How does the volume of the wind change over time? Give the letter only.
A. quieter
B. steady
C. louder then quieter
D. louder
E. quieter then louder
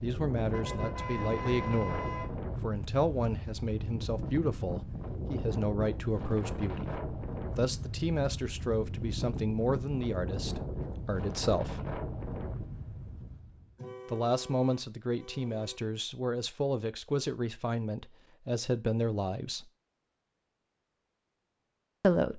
B.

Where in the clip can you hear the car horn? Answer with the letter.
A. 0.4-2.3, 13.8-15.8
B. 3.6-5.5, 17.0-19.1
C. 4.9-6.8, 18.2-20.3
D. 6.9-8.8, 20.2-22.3
A.